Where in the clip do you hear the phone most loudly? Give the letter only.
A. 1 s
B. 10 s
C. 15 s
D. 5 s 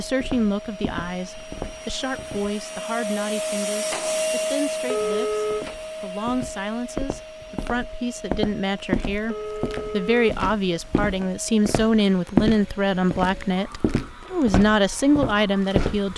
D.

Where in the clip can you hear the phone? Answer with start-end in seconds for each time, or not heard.
4.8-5.7, 9.2-10.2.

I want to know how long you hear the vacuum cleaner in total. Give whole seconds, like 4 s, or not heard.
16 s.